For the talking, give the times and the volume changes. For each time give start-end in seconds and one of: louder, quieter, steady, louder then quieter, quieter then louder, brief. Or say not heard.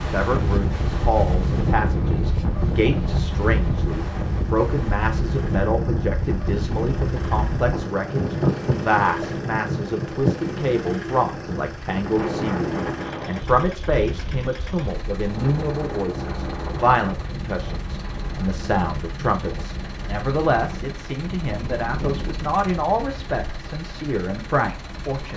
0.1-25.3 steady.